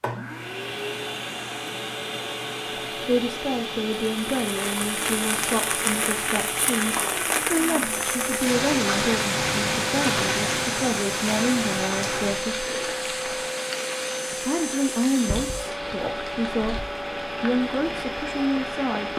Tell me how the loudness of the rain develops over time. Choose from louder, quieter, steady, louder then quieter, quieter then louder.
quieter.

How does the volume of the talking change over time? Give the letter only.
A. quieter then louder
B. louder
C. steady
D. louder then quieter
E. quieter
C.